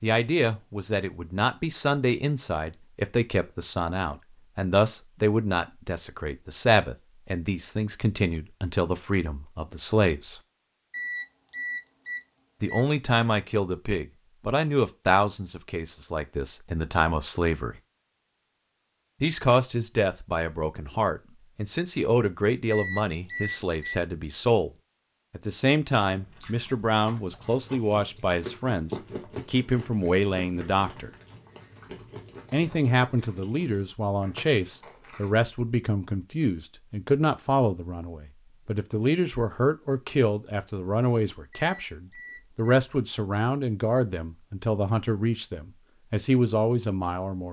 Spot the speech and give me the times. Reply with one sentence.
You can hear the speech from 0.0 to 10.4 s, from 12.6 to 17.8 s, from 19.2 to 24.7 s, from 25.3 to 31.1 s and from 32.5 to 47.4 s.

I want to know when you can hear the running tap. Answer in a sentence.
You can't hear the running tap here.